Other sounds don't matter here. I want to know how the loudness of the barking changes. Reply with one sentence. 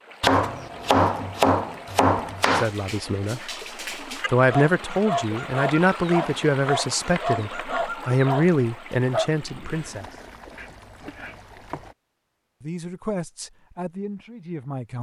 The loudness of the barking goes up.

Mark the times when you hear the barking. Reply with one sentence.
You can hear the barking from 2.5 to 9.3 s.